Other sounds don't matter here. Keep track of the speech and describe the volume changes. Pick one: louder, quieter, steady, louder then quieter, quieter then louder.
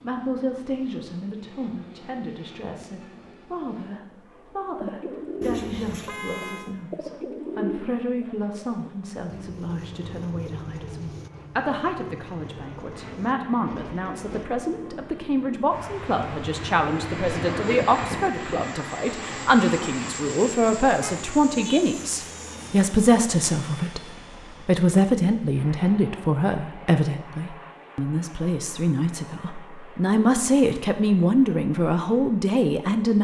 louder.